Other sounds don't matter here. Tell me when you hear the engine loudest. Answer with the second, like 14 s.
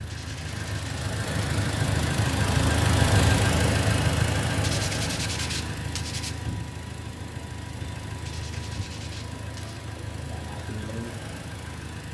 3 s.